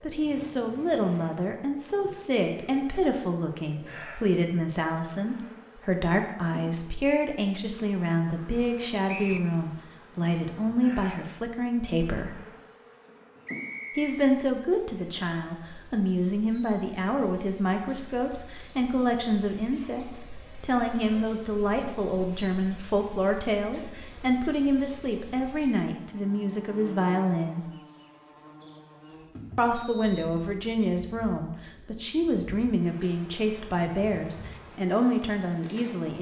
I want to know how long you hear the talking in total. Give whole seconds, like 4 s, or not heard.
33 s.